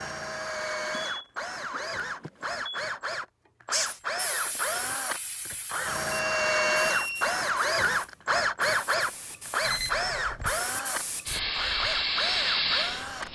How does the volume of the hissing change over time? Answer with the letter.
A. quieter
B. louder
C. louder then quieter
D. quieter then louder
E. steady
D.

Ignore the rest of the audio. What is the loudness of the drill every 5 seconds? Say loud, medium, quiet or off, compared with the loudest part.
medium, loud, medium.